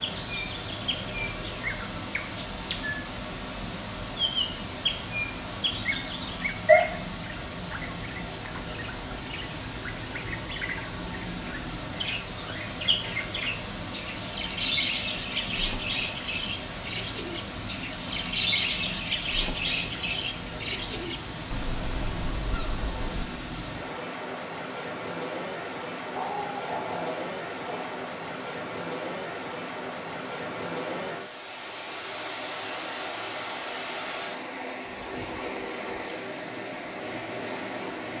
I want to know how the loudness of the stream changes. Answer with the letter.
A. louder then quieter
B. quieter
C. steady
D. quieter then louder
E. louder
C.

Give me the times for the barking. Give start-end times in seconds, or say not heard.
26.1-28.0.